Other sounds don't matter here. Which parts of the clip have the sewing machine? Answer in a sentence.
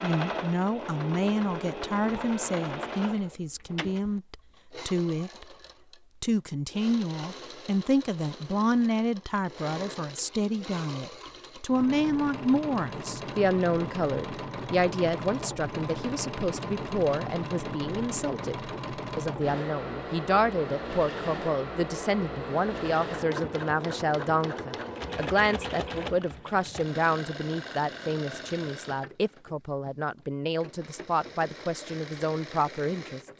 You can hear the sewing machine from 0.0 to 33.3 s.